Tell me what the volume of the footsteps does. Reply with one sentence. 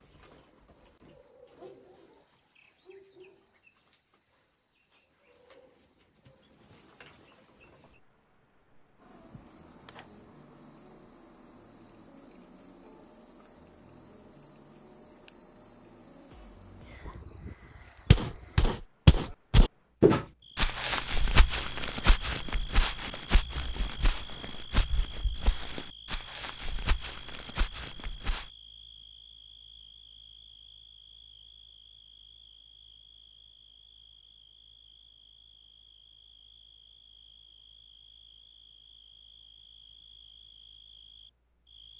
The loudness of the footsteps goes down.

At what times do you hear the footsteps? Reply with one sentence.
You can hear the footsteps from 18.1 to 28.5 s.